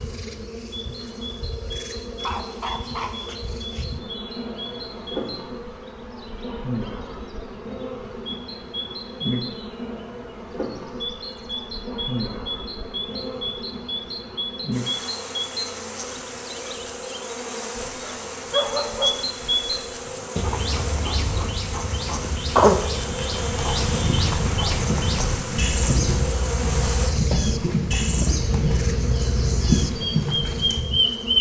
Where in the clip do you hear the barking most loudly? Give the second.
19 s.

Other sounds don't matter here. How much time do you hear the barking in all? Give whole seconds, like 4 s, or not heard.
4 s.